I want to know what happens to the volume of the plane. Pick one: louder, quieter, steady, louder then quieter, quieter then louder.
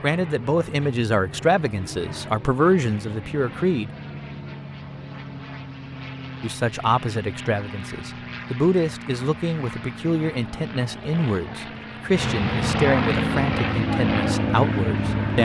louder.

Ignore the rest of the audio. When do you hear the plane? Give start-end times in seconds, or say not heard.
0.0-15.4.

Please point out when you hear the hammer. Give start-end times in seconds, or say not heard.
not heard.